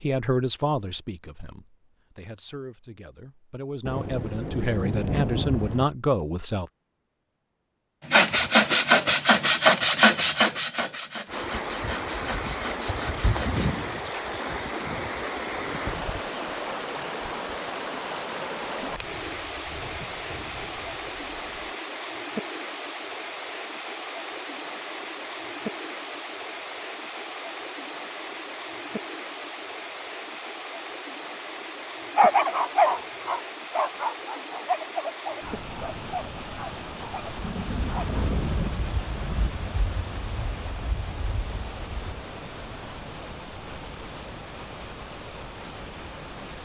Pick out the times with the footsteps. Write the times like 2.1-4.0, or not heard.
not heard.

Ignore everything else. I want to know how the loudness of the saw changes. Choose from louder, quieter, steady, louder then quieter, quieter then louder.
quieter.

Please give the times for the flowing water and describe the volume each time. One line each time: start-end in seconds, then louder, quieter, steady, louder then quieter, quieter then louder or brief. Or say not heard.
11.2-46.6 quieter.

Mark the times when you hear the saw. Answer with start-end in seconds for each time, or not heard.
8.1-13.7.